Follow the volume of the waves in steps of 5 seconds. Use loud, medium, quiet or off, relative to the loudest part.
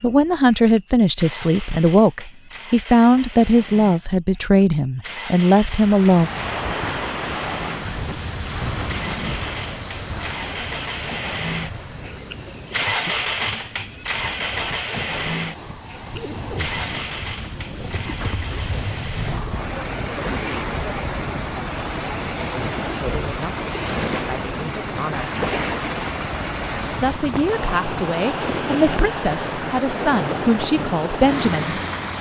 off, loud, medium, medium, loud, loud, loud.